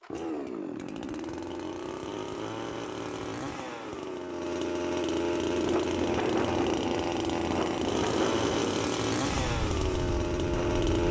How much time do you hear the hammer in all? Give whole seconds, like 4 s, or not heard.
not heard.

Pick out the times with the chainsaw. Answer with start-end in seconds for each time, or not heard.
0.0-11.0.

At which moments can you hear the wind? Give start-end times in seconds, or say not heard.
5.3-11.0.